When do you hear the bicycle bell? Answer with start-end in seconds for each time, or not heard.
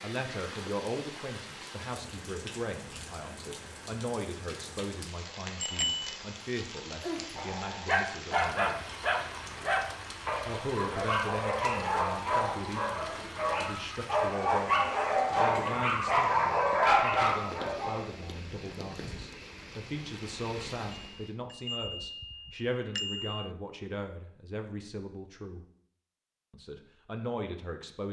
5.6-6.2, 20.9-23.5.